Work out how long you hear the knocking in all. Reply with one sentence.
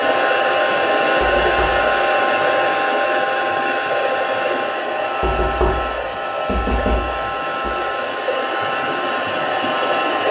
You can hear the knocking for 3 seconds altogether.